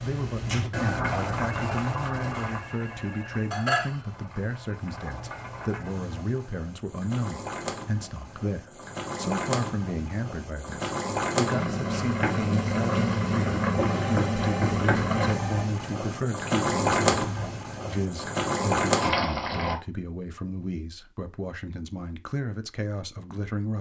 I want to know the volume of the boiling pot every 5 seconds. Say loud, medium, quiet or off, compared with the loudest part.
medium, medium, loud, loud, off.